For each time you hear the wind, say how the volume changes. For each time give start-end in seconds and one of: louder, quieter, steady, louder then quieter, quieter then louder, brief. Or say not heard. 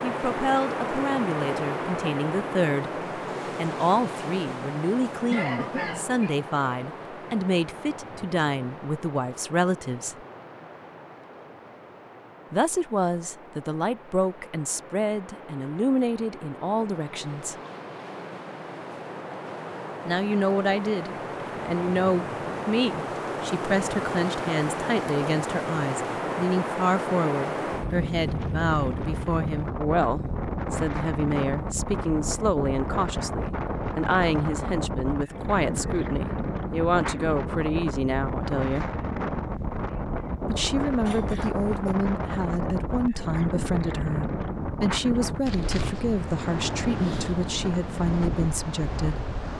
0.0-49.5 quieter then louder.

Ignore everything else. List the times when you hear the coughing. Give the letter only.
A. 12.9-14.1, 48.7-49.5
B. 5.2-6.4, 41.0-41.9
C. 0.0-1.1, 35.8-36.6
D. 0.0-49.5
B.